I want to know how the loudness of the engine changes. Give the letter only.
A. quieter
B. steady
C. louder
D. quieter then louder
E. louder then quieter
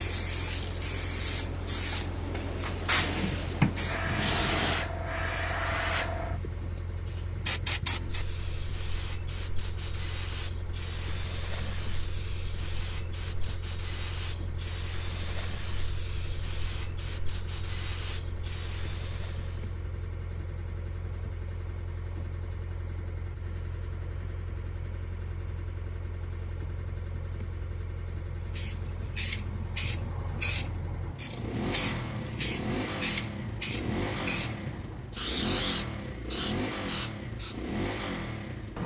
C.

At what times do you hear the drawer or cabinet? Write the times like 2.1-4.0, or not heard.
3.0-4.8.